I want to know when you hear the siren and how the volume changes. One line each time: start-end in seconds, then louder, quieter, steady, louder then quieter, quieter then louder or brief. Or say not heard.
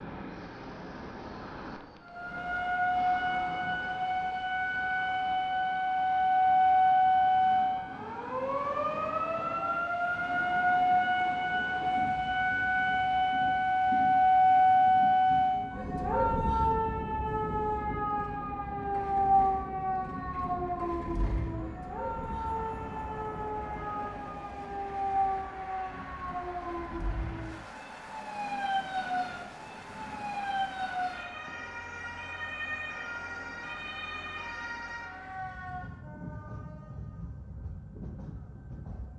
2.0-36.0 quieter.